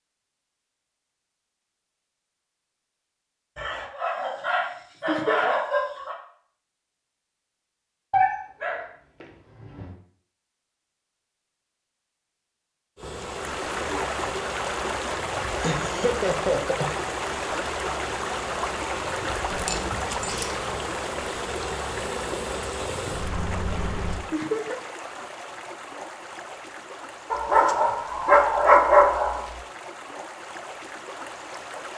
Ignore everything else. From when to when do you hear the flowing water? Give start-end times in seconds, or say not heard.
13.1-31.9.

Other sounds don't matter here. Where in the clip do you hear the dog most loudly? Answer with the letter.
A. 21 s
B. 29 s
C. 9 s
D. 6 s
B.